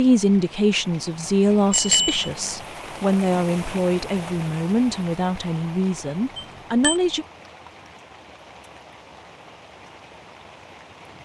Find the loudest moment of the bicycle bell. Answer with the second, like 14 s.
2 s.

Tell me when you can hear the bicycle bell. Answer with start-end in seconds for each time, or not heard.
1.7-2.3, 6.3-7.0.